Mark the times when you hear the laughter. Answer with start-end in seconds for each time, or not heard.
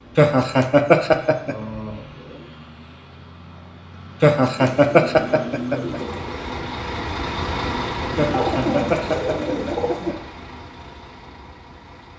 0.1-1.6, 4.2-6.0, 8.2-10.2.